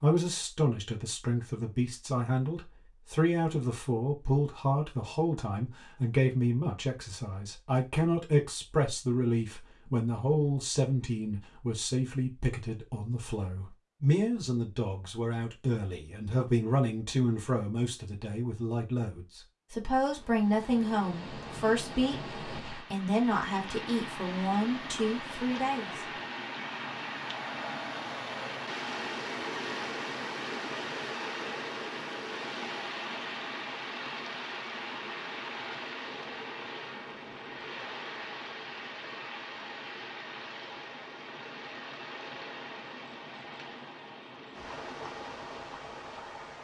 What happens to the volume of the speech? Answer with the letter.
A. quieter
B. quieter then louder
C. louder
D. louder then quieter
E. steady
E.